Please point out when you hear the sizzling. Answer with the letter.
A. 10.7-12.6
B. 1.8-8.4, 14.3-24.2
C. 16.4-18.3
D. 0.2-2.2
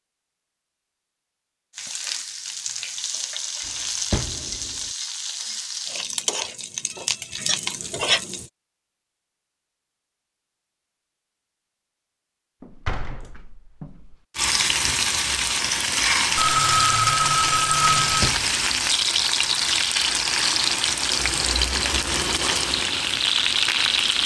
B.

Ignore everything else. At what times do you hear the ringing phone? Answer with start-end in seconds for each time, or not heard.
16.4-18.3.